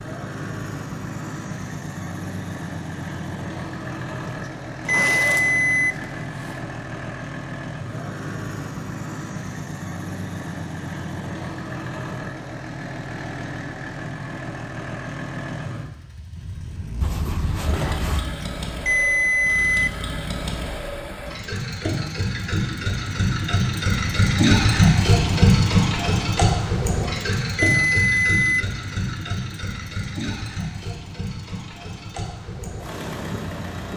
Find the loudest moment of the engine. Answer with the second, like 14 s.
25 s.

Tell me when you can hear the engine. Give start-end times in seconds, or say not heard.
0.0-33.9.